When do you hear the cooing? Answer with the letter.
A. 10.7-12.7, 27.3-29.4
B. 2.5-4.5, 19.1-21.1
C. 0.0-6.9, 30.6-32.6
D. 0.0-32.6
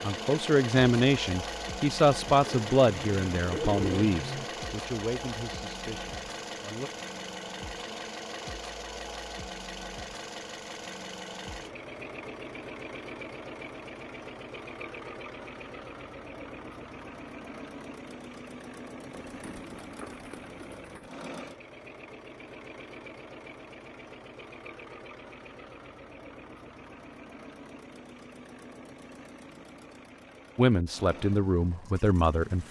B.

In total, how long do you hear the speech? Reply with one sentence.
The speech can be heard for 9 seconds in total.